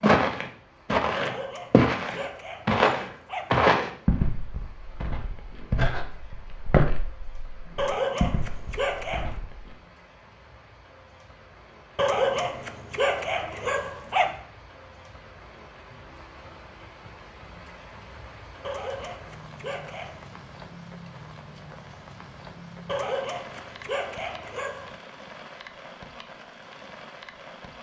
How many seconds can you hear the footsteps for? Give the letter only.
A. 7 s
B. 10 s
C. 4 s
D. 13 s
B.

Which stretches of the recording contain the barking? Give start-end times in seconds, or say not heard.
1.1-3.7, 7.8-9.3, 11.9-14.4, 18.6-20.4, 22.9-25.1.